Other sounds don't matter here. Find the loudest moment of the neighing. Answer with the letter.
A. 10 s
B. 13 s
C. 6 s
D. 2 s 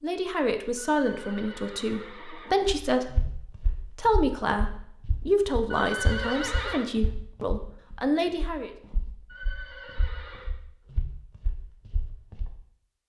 C.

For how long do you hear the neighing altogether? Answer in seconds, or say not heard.
4 s.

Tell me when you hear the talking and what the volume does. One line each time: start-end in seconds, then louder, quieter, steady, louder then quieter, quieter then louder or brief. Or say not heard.
0.0-8.7 steady.